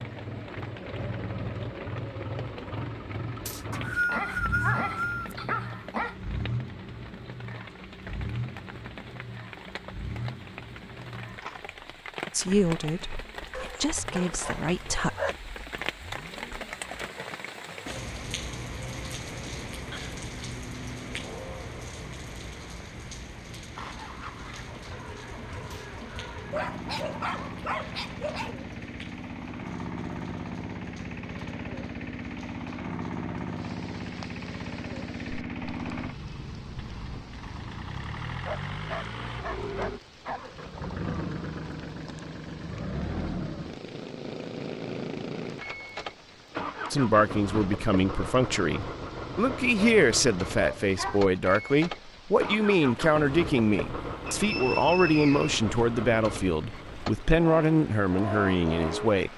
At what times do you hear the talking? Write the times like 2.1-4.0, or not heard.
12.3-15.2, 46.9-59.3.